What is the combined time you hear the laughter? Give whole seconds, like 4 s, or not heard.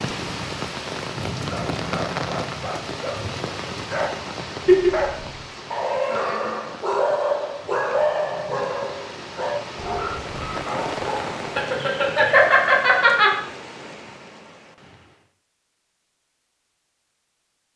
2 s.